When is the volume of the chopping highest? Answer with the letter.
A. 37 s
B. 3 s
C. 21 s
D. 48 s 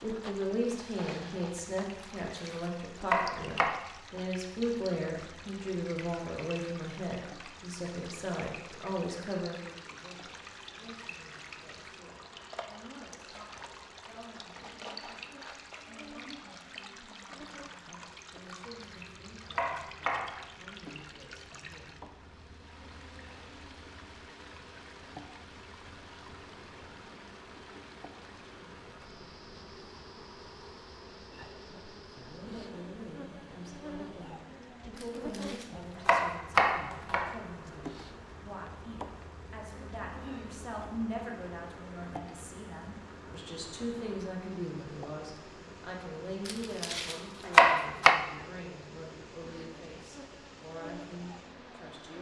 D.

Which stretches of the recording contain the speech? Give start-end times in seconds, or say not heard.
0.0-22.1, 31.6-52.1.